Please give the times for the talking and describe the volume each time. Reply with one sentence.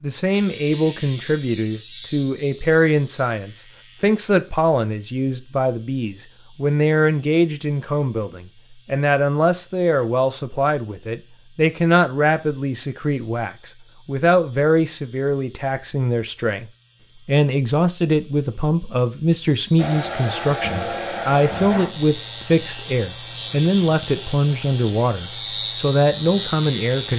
The talking can be heard from 0.0 to 16.6 s, at a steady volume; and from 17.2 to 27.1 s, at a steady volume.